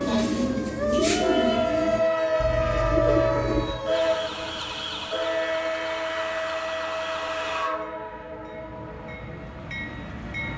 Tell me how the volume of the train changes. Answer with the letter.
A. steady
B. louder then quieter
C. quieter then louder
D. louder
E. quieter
E.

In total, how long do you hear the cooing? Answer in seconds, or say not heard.
4 s.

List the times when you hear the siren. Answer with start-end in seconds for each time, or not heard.
0.0-7.8.